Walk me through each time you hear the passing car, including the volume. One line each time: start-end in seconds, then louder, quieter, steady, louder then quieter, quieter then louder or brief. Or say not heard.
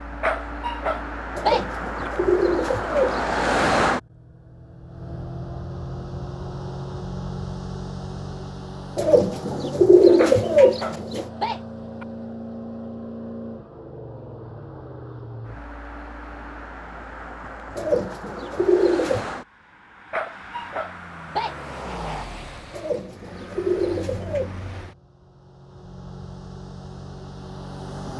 0.0-28.1 quieter.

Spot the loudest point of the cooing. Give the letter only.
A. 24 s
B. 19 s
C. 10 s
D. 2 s
C.